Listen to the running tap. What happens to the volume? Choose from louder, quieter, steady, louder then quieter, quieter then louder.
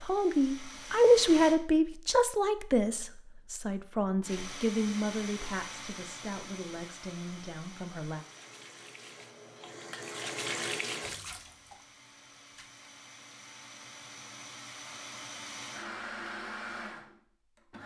louder then quieter.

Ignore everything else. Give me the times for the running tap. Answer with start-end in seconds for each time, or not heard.
8.1-12.8.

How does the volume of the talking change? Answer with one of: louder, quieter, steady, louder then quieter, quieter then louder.
quieter.